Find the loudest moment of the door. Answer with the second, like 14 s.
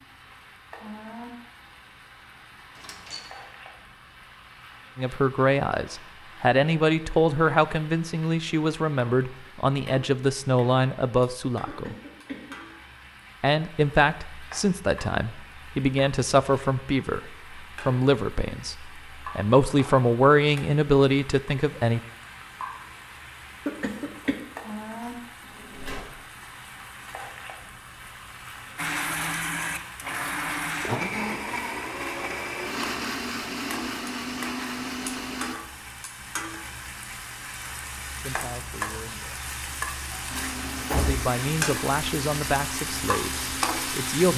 41 s.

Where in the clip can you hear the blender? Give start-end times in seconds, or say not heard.
28.8-35.5, 40.3-44.3.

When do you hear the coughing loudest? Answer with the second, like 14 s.
24 s.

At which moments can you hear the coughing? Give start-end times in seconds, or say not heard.
11.7-12.6, 23.6-24.4.